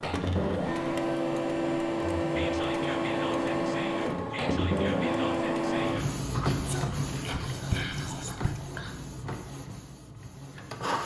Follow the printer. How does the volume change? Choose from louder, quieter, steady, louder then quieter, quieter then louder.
quieter.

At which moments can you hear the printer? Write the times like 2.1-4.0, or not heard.
0.0-11.0.